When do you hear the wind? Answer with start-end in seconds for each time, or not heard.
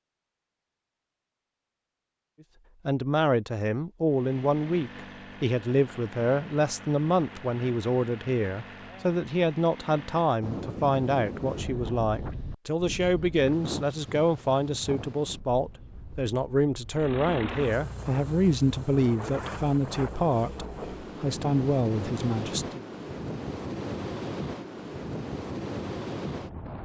10.4-26.8.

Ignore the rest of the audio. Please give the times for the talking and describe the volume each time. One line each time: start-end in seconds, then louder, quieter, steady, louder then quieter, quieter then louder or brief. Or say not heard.
2.9-22.9 steady.